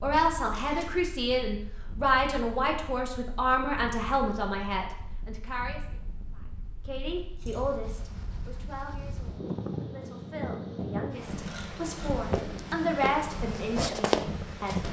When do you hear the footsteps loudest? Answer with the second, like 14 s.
14 s.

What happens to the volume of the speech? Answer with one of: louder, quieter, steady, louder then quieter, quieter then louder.
quieter then louder.